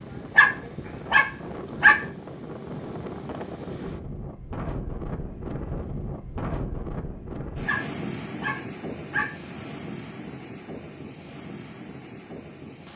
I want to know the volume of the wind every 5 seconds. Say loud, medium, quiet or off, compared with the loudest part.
loud, loud, medium.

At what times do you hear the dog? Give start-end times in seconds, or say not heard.
0.1-2.0, 7.5-9.3.